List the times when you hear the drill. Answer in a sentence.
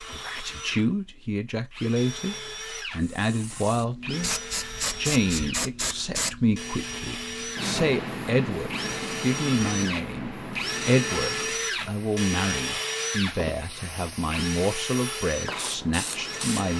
You can hear the drill from 0.0 to 16.7 s.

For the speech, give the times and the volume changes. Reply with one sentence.
You can hear the speech from 0.0 to 16.7 s, at a steady volume.